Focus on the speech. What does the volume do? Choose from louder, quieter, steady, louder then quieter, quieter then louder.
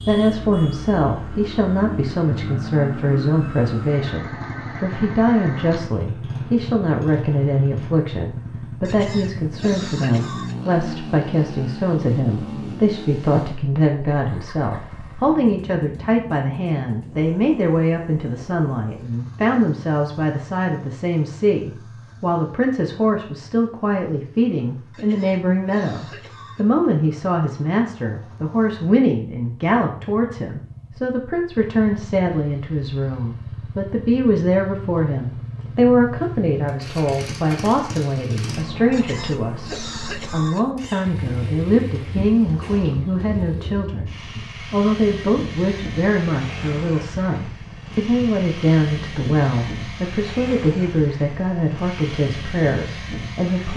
steady.